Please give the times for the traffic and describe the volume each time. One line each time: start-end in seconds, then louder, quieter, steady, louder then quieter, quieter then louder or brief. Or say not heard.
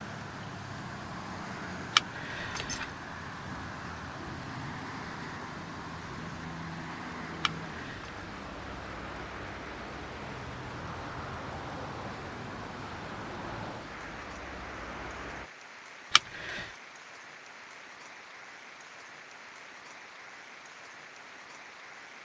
0.0-15.5 steady.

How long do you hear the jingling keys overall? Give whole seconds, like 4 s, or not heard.
2 s.